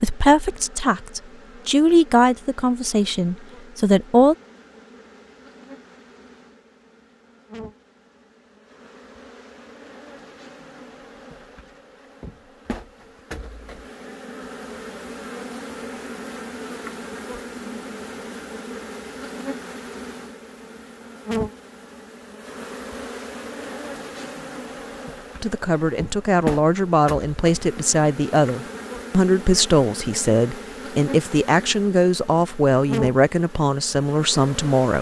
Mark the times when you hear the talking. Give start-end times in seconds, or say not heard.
0.0-4.3, 25.4-34.9.